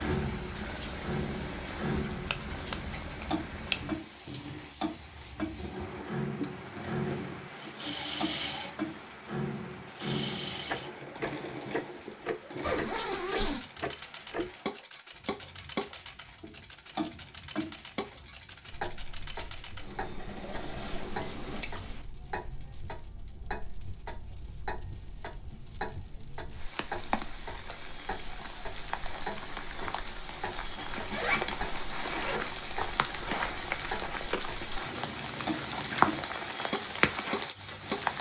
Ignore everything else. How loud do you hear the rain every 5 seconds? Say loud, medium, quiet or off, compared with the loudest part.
quiet, quiet, quiet, quiet, quiet, medium, medium, loud.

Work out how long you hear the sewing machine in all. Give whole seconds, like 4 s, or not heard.
22 s.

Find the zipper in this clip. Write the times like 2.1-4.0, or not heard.
12.6-13.7, 30.8-32.5.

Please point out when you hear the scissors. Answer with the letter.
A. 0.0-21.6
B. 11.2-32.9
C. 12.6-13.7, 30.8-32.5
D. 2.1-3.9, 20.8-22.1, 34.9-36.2
D.